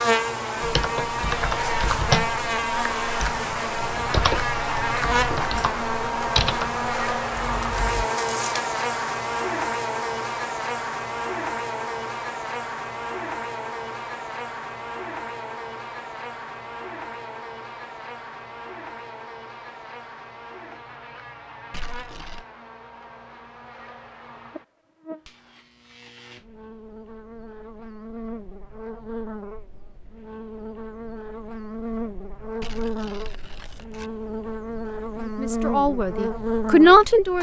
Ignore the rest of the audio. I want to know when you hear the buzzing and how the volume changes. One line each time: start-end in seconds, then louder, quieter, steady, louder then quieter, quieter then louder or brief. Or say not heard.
0.0-37.3 quieter then louder.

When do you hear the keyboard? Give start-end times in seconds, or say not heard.
0.6-8.1.